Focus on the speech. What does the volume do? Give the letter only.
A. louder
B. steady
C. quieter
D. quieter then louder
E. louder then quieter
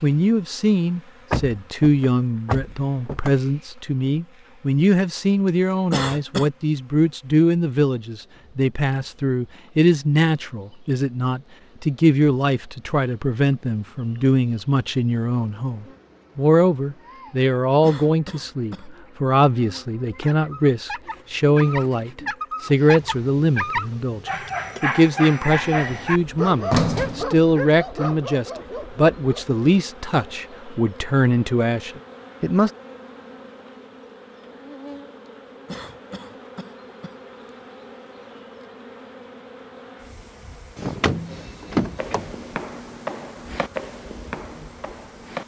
B.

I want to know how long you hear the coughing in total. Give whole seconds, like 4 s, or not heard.
3 s.